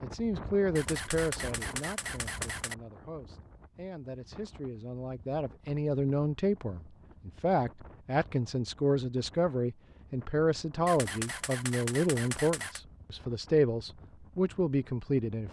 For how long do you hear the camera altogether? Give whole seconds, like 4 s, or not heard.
4 s.